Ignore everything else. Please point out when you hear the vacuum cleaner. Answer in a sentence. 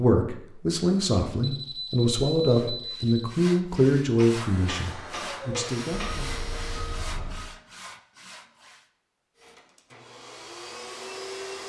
You can hear the vacuum cleaner from 4.3 to 7.1 s and from 9.3 to 11.6 s.